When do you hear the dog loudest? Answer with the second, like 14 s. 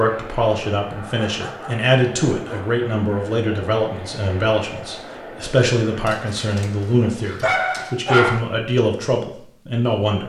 8 s.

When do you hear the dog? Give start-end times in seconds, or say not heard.
1.1-2.7, 6.0-8.4.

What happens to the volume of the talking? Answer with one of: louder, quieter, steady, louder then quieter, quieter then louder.
steady.